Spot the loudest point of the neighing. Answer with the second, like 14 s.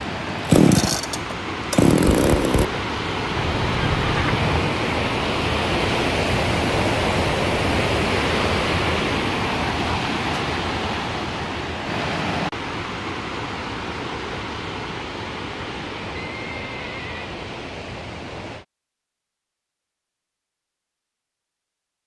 4 s.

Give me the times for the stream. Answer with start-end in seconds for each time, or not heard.
0.0-18.6.